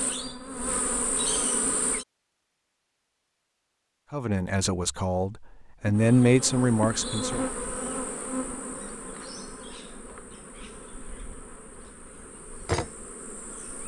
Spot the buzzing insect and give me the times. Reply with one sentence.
You can hear the buzzing insect from 0.0 to 2.0 s and from 5.9 to 13.8 s.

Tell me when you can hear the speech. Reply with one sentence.
The speech can be heard from 4.1 to 7.5 s.